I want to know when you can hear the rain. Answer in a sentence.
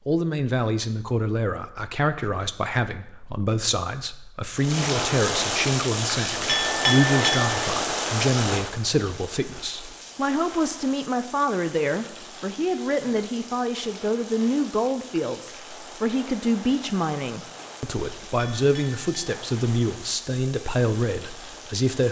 You can hear the rain from 4.5 to 22.0 s.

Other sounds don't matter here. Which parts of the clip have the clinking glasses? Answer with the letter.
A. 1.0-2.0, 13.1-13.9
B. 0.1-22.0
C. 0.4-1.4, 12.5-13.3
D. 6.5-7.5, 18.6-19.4
D.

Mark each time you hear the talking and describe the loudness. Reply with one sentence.
The talking can be heard from 0.1 to 22.0 s, at a steady volume.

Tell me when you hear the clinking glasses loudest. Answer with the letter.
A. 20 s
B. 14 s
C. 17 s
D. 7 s
D.